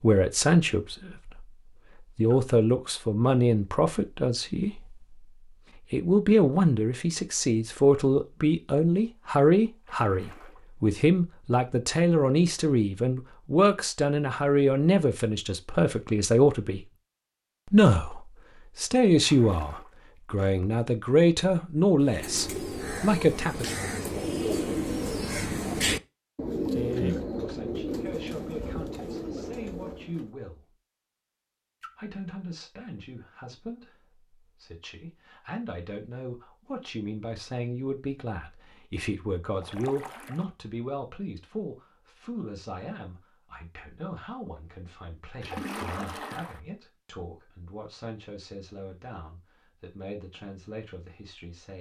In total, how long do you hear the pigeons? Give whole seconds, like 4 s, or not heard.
8 s.